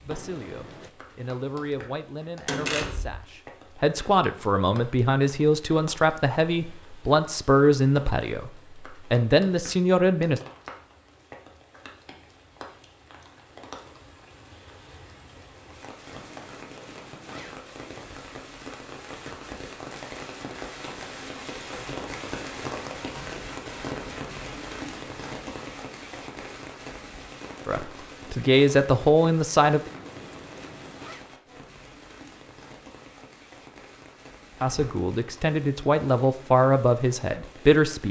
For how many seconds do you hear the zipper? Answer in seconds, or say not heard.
4 s.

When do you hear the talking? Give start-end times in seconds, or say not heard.
0.1-10.4, 27.6-29.9, 34.6-38.0.